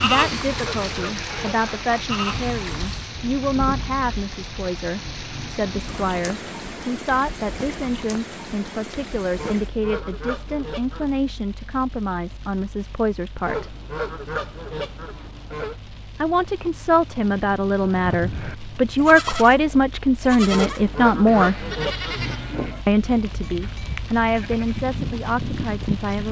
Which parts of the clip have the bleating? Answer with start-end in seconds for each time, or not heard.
0.0-3.0, 17.8-26.2.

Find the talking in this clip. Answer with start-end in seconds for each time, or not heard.
0.0-13.8, 16.2-21.6, 22.9-26.2.